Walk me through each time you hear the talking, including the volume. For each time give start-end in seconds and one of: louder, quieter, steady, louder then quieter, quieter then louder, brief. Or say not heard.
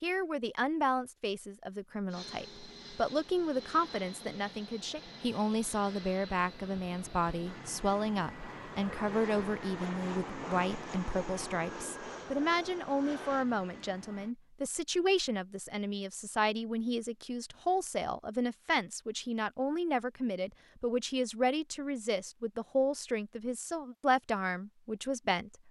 0.0-25.5 steady.